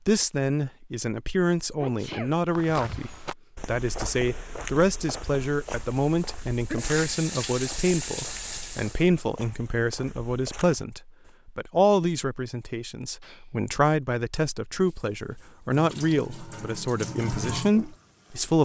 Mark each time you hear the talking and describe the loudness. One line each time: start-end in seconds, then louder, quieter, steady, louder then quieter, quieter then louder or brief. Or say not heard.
0.1-18.6 steady.